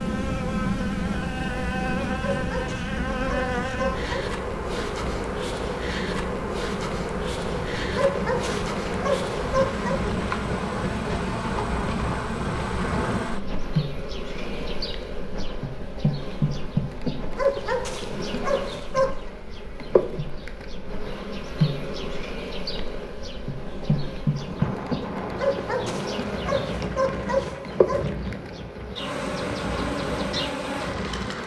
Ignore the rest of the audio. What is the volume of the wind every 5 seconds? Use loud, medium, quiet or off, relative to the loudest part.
loud, loud, loud, medium, medium, loud, loud.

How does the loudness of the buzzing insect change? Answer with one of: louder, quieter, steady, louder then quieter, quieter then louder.
steady.